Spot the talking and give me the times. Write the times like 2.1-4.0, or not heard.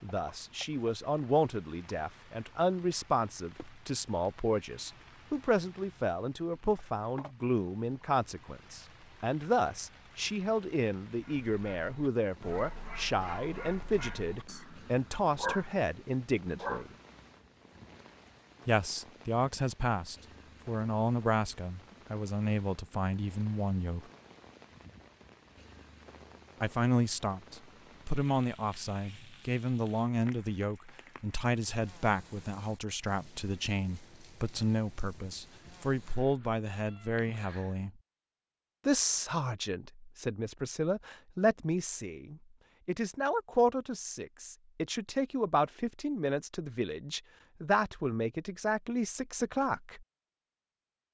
0.0-16.9, 18.6-24.0, 26.6-37.9, 38.9-50.0.